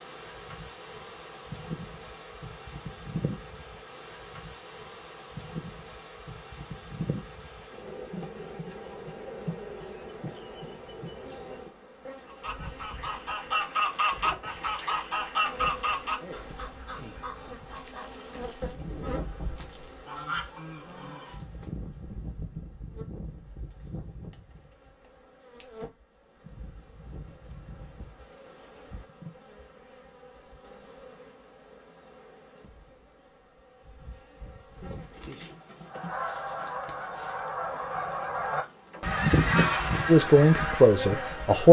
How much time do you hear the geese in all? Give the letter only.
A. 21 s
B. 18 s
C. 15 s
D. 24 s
C.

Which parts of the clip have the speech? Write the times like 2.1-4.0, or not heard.
40.0-41.6.